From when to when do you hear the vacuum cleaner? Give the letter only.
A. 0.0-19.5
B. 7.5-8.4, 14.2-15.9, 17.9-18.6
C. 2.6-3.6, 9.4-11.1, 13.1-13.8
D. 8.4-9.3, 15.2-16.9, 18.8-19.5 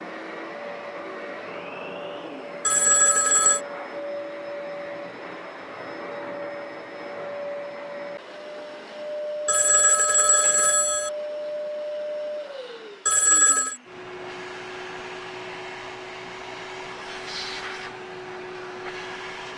A.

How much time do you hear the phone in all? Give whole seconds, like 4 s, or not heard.
3 s.